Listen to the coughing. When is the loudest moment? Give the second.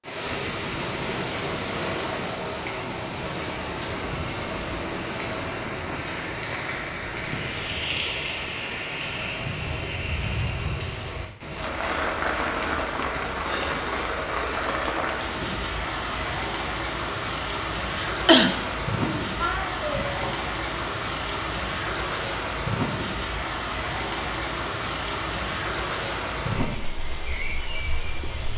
18 s.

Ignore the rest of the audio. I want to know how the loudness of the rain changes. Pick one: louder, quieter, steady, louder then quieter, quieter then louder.
steady.